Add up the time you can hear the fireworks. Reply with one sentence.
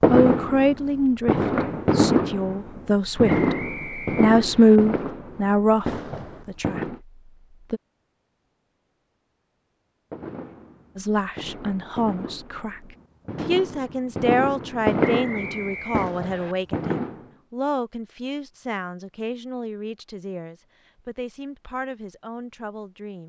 The fireworks can be heard for 14 seconds in total.